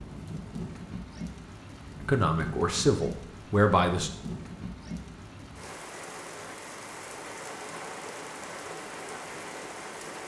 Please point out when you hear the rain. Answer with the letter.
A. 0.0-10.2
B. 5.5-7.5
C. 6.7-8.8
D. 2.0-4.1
A.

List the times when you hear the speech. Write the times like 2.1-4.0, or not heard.
2.0-4.1.